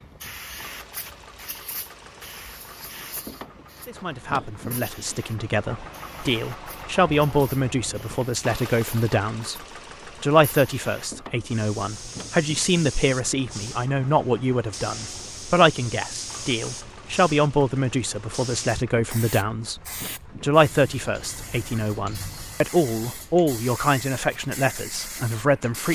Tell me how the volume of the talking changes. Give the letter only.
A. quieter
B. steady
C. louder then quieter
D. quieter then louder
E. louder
B.